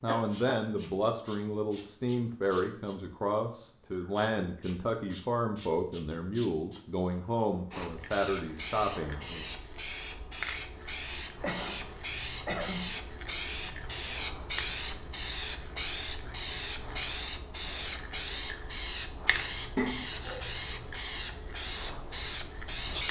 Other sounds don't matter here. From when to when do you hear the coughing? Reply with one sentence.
You can hear the coughing from 0.1 to 0.6 s, from 11.4 to 12.8 s and from 19.8 to 20.4 s.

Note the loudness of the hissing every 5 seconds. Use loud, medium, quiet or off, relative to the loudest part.
quiet, medium, loud, loud, loud.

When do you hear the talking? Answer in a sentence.
You can hear the talking from 0.0 to 9.5 s.